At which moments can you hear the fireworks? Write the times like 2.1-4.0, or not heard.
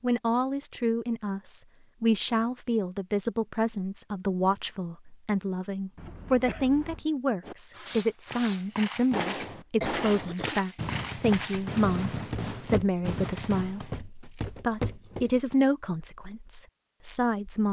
7.4-14.0.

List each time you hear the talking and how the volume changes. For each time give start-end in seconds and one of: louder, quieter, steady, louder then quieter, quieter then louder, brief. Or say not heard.
0.0-17.6 steady.